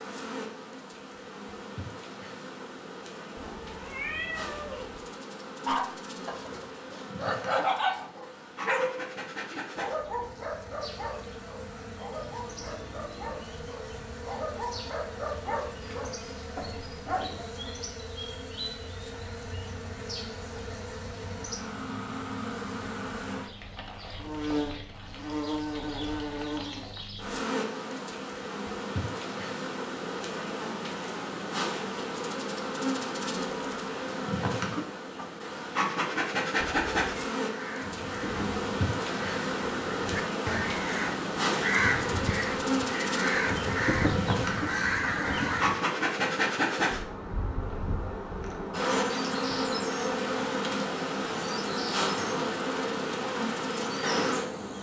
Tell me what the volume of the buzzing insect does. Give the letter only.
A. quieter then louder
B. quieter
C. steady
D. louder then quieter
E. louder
E.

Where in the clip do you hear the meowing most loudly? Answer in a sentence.
The loudest moment of the meowing is at 4 seconds.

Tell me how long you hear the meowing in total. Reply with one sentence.
The meowing can be heard for 2 seconds in total.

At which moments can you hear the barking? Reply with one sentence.
You can hear the barking from 5.7 to 17.5 s.